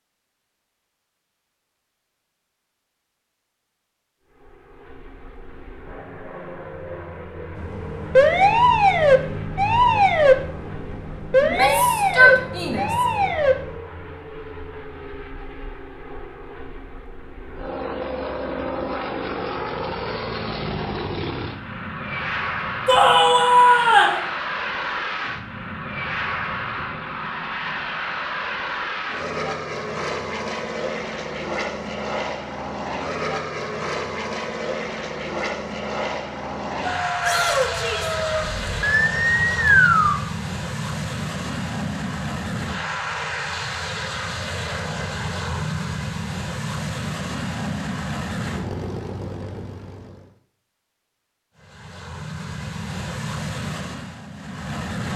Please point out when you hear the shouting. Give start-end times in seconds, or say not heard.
11.4-12.9, 22.9-24.2, 37.2-38.1.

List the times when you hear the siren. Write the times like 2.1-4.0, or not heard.
7.5-13.8, 36.9-40.1.